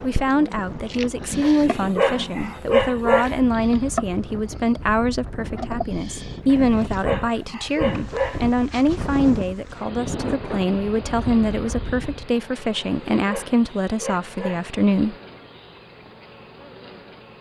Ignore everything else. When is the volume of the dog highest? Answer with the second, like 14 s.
3 s.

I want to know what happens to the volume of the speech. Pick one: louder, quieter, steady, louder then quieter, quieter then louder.
steady.